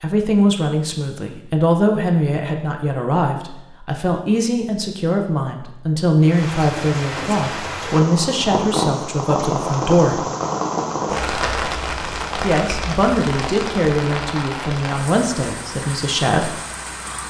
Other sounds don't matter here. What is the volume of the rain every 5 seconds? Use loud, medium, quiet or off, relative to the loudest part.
off, loud, loud, medium.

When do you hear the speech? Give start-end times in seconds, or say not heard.
0.0-10.2, 12.4-16.6.